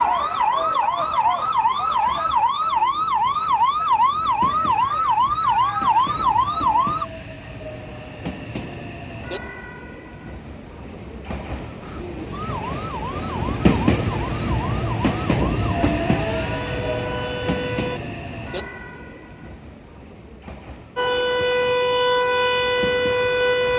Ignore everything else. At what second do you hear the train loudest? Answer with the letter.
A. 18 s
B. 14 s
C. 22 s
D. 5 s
B.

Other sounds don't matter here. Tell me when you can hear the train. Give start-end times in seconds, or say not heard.
0.0-23.7.